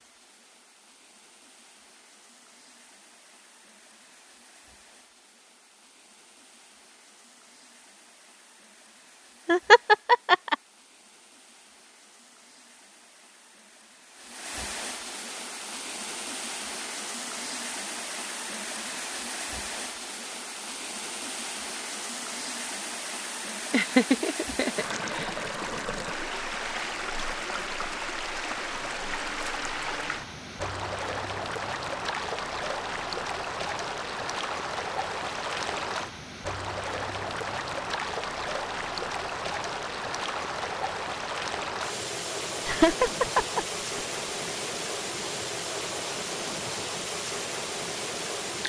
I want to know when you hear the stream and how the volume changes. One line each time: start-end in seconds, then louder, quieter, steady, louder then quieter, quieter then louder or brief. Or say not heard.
0.0-48.6 louder.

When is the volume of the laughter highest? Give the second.
10 s.